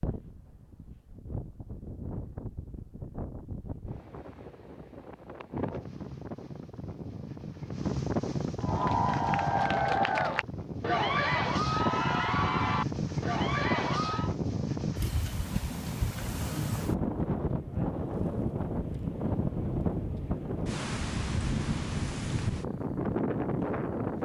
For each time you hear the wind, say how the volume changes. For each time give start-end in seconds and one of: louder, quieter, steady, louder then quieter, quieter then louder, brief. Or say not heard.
0.0-24.2 louder.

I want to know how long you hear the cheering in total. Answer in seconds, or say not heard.
6 s.